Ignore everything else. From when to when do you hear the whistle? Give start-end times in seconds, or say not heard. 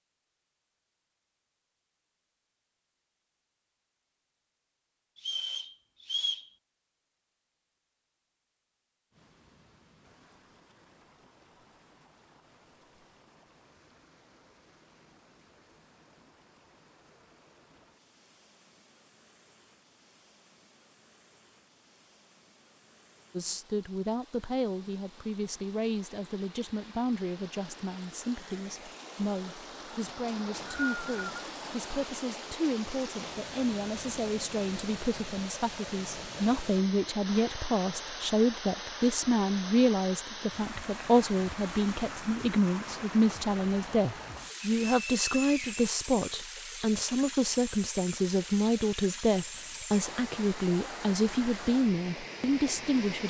5.2-6.5, 30.2-31.4, 44.9-45.9.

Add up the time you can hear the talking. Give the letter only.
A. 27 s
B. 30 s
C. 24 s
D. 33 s
B.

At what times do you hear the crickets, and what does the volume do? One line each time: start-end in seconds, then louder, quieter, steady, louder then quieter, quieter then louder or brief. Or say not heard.
not heard.